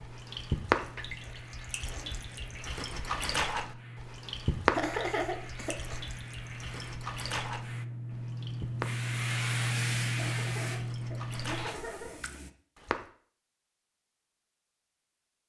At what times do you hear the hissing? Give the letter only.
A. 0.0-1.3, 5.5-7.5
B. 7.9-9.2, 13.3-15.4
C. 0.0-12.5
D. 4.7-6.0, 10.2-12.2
C.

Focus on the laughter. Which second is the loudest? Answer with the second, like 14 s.
5 s.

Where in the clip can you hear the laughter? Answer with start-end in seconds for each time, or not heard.
4.7-6.0, 10.2-12.2.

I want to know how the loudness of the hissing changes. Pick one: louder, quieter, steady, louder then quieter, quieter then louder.
louder.